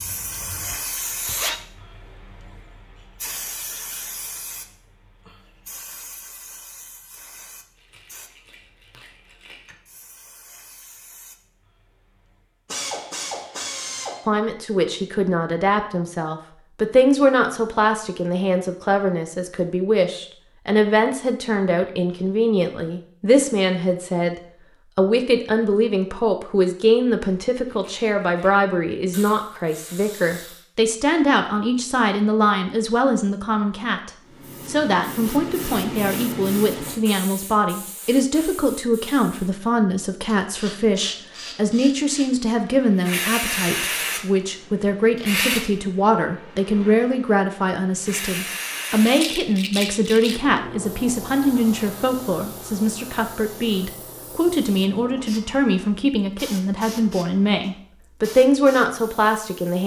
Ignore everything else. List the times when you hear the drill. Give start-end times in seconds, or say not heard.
0.0-1.6.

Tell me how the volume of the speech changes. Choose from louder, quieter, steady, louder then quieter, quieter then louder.
steady.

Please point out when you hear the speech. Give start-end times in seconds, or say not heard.
14.2-24.4, 24.9-59.8.